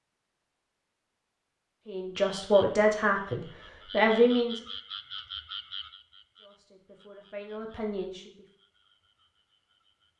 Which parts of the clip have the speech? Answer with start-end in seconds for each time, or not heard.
1.9-4.7, 6.4-8.4.